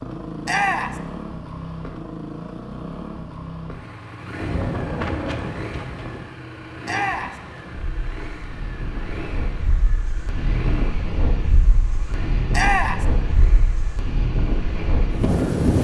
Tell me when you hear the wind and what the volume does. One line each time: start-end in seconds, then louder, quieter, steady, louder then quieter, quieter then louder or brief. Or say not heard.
4.3-15.7 quieter then louder.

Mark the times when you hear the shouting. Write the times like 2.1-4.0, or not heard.
0.5-1.0, 6.8-7.4, 12.5-13.1.